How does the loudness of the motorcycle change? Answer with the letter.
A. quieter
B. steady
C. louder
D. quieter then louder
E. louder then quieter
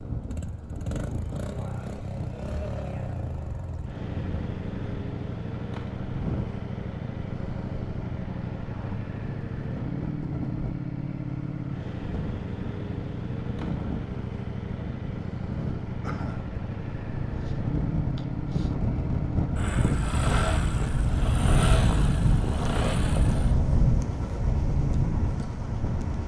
B.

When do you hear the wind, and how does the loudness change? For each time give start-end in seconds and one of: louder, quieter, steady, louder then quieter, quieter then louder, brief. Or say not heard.
0.0-26.2 louder.